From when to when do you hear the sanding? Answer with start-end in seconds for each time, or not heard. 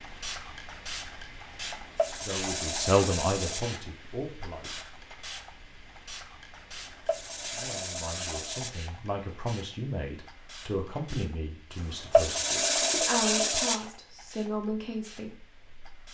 1.6-3.6, 6.7-8.7, 11.8-13.8.